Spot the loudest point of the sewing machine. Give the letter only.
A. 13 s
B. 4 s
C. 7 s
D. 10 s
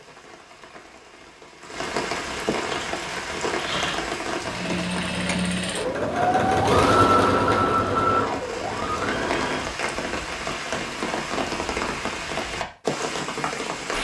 C.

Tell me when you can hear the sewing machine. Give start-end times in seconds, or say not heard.
2.6-9.7.